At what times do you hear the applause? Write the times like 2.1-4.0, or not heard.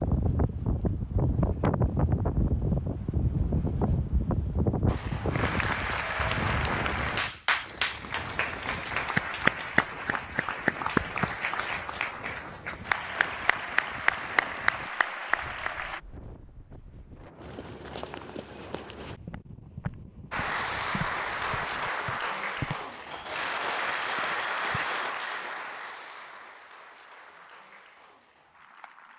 4.8-16.0, 20.3-29.1.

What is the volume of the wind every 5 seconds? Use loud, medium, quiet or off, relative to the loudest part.
loud, medium, quiet, quiet, quiet, off.